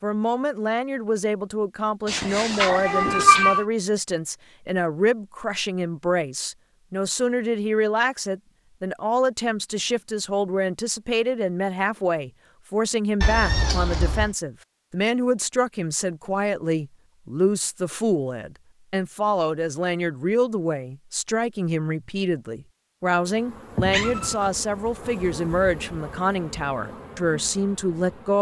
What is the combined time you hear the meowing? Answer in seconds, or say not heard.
3 s.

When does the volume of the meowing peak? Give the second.
3 s.